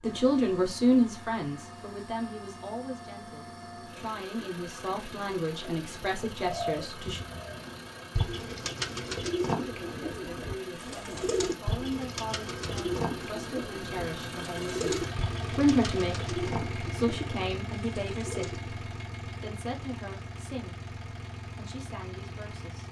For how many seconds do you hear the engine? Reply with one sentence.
You can hear the engine for 23 seconds altogether.